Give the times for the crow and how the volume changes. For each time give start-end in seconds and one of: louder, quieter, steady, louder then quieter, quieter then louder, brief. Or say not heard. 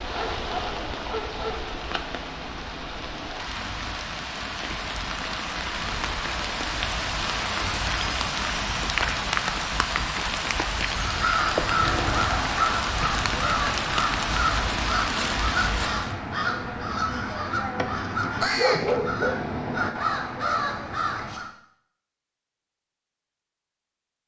10.9-21.5 steady.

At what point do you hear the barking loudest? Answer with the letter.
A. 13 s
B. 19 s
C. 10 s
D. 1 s
B.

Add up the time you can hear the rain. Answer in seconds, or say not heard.
16 s.